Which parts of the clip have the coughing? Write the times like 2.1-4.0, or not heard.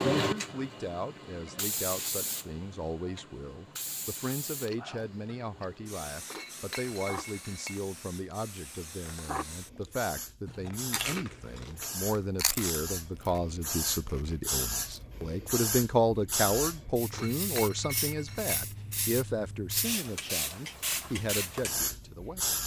not heard.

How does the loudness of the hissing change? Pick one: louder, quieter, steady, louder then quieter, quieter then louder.
quieter then louder.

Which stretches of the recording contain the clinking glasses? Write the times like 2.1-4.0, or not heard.
6.2-7.8, 17.1-18.6.